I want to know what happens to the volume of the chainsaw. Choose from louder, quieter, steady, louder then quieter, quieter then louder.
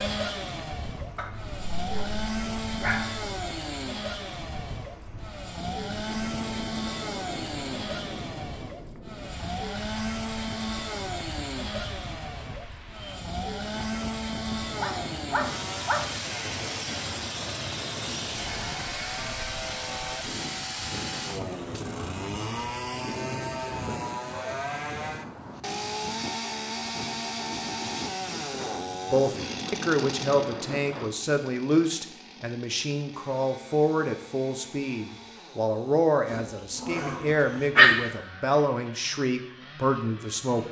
quieter.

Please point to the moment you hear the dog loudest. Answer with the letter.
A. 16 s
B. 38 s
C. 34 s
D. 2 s
B.